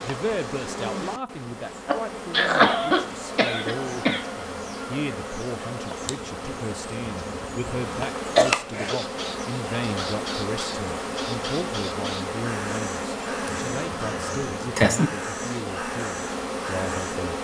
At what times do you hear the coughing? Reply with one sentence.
The coughing can be heard from 1.9 to 4.2 s, from 8.2 to 8.9 s and from 13.4 to 15.0 s.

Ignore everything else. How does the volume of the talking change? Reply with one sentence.
The volume of the talking stays about the same.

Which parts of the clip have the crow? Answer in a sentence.
The crow can be heard from 8.7 to 17.2 s.